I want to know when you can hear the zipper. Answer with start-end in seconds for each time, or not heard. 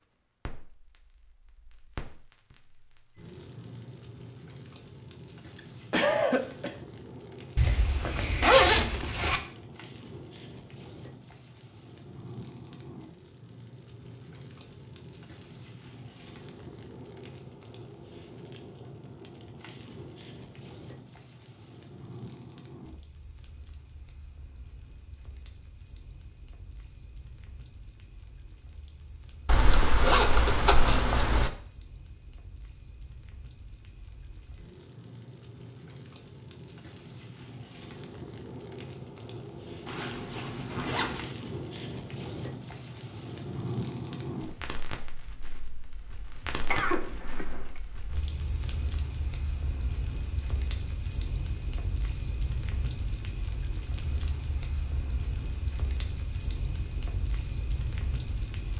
7.5-9.4, 29.4-31.5, 39.9-41.4.